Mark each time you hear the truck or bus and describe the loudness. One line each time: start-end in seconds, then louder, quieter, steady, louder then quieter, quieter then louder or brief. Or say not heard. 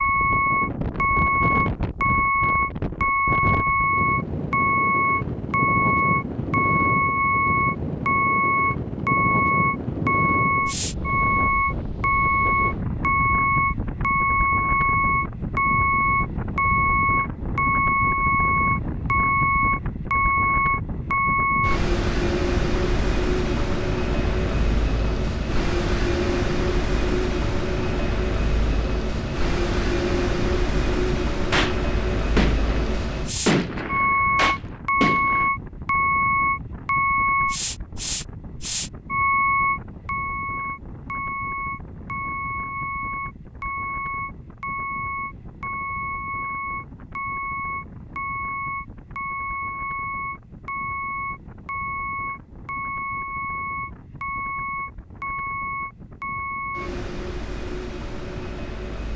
0.0-59.1 quieter.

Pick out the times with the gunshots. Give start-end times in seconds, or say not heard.
31.5-35.5.